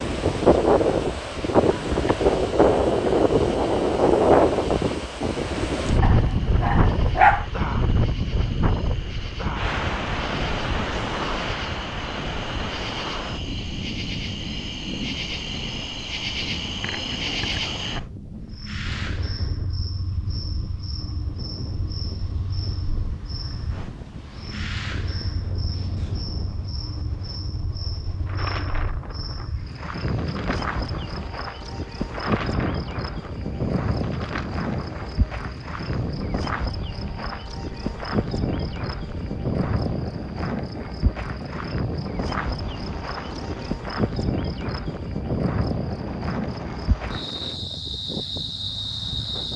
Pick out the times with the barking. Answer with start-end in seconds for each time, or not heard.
6.0-7.5.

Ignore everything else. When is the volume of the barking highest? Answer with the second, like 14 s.
7 s.